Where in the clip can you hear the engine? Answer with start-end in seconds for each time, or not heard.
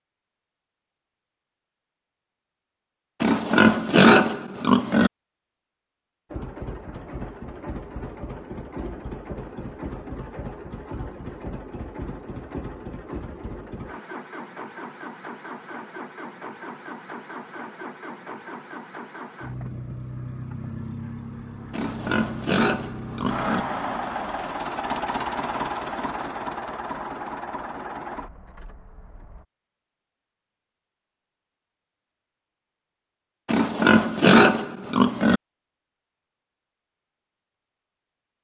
6.3-29.4.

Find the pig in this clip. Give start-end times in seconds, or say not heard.
3.2-5.1, 21.7-23.6, 33.5-35.4.